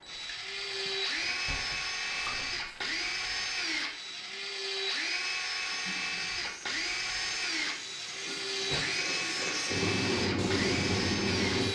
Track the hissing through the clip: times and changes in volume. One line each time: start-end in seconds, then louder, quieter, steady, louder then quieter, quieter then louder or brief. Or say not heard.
0.0-11.6 louder.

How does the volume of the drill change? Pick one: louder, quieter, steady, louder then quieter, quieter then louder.
steady.